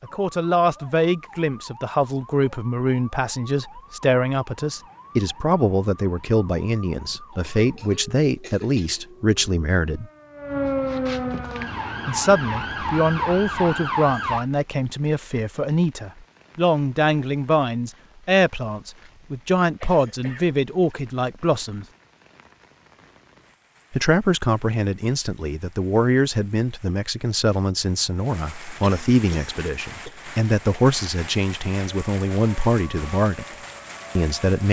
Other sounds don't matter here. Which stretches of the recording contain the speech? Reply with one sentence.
The speech can be heard from 0.0 to 10.1 s, from 12.1 to 21.9 s, from 23.9 to 33.5 s and from 34.1 to 34.6 s.